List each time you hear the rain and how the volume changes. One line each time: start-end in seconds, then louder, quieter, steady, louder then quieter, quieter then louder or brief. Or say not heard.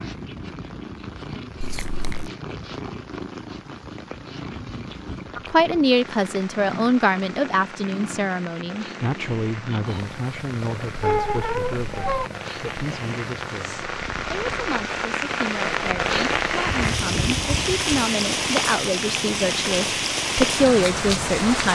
0.0-21.6 louder.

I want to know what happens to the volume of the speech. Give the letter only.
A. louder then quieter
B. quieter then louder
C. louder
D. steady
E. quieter
B.